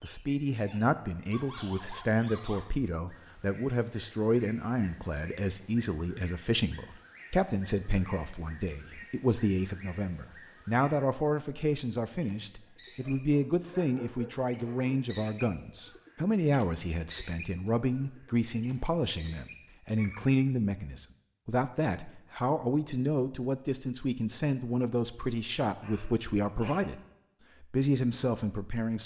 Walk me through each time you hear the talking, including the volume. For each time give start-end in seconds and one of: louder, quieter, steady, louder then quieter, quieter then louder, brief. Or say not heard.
0.0-27.0 steady
27.6-29.0 brief.